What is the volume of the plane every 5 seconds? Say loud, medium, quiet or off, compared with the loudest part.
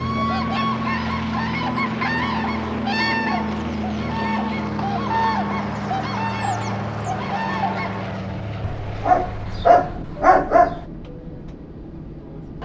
loud, loud, medium.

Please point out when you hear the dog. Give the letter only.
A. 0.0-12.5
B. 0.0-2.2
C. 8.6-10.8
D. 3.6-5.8
C.